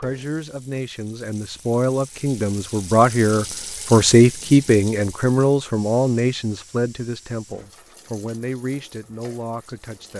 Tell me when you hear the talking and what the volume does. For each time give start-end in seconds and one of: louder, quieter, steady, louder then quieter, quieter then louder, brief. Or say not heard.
0.0-10.1 louder then quieter.